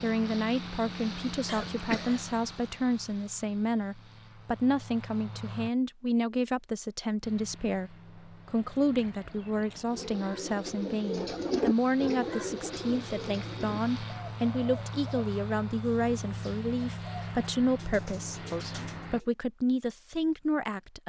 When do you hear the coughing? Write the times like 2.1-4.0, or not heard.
1.4-2.4.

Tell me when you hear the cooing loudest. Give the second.
12 s.